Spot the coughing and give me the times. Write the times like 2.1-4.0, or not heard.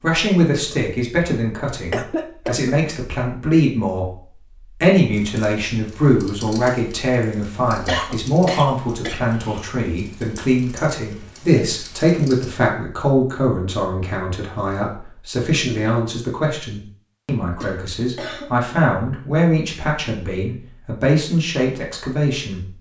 1.9-2.8, 7.8-9.7, 17.6-18.4.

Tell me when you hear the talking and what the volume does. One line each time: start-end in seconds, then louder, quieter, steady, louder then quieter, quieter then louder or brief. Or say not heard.
0.0-4.2 quieter then louder
4.8-22.7 steady.